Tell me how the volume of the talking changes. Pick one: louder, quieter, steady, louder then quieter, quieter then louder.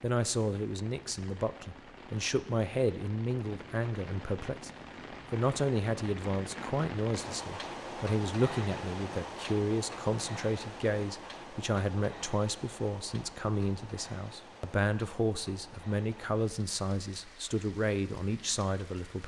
steady.